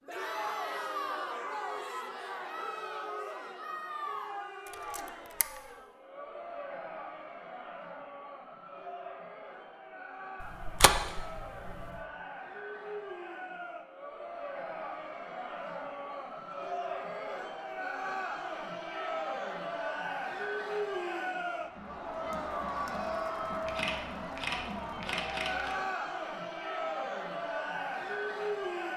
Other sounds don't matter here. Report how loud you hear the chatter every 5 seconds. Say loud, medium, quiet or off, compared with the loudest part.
loud, medium, medium, loud, loud, loud.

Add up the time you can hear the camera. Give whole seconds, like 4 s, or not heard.
4 s.